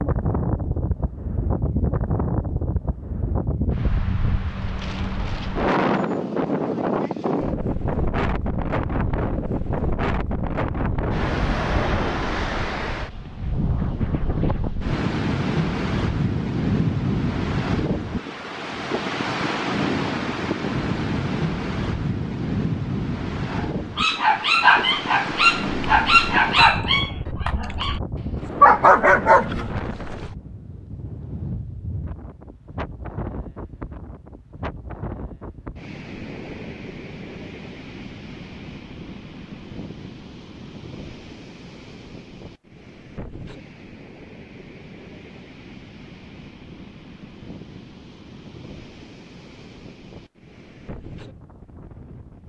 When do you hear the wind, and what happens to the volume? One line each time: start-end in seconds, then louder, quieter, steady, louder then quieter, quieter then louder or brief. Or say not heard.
0.0-52.4 quieter.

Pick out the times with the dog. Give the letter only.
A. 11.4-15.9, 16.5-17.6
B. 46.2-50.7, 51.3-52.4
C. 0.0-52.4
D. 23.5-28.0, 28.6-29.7
D.